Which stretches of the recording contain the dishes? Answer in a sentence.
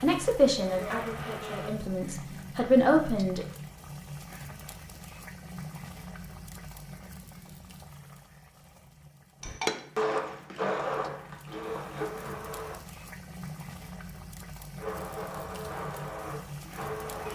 The dishes can't be heard in this clip.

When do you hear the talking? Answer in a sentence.
The talking can be heard from 0.0 to 3.5 s.